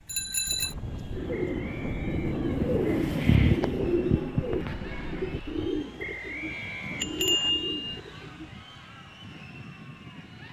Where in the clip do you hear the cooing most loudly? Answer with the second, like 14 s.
3 s.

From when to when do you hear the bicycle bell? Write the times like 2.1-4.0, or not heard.
0.1-0.8, 7.0-8.0.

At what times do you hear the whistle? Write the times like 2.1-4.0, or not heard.
1.3-2.4, 6.0-7.5.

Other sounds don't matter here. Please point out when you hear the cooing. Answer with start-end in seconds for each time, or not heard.
1.1-8.5.